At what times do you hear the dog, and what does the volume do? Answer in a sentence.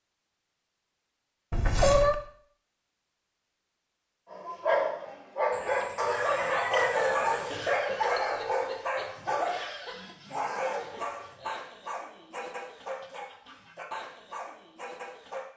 The dog can be heard from 4.3 to 15.4 s, getting quieter.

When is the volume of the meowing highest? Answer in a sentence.
The volume of the meowing peaks at 2 seconds.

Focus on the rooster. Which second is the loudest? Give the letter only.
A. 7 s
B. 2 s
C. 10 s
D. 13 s
A.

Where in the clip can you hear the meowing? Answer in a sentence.
The meowing can be heard from 1.5 to 2.1 s and from 7.8 to 8.5 s.